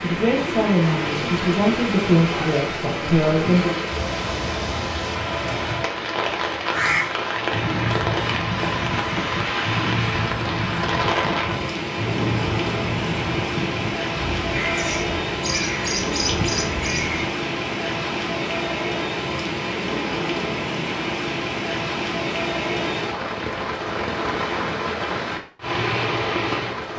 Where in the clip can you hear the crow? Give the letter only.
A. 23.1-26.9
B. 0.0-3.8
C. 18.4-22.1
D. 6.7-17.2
D.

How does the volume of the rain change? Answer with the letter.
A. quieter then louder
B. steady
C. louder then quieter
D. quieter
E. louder
B.